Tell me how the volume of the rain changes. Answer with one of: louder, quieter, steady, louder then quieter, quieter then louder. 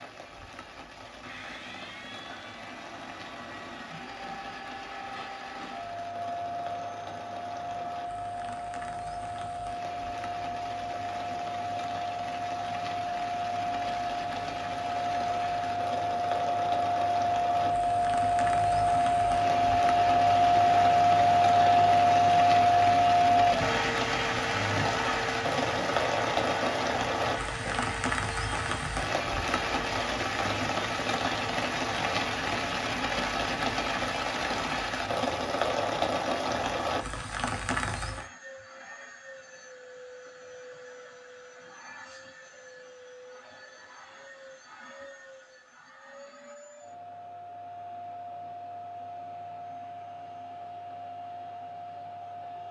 louder.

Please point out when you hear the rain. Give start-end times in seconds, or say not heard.
0.0-38.3.